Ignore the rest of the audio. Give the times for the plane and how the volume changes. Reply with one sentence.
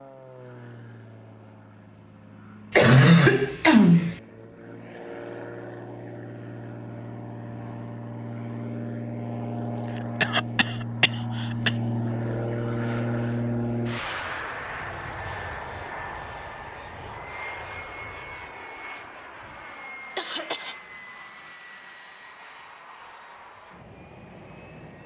You can hear the plane from 0.0 to 25.0 s, getting louder then quieter.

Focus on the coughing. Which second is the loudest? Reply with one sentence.
The volume of the coughing peaks at 3 seconds.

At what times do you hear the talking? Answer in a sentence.
You can't hear the talking here.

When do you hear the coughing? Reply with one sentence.
The coughing can be heard from 2.7 to 4.2 s, from 9.8 to 11.8 s and from 20.1 to 20.8 s.